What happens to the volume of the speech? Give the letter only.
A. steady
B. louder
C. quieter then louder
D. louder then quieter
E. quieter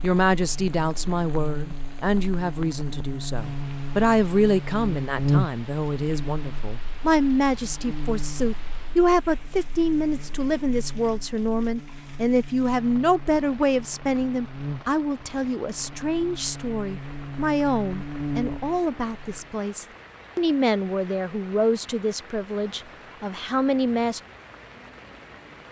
A.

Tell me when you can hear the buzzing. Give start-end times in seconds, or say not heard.
0.0-19.4.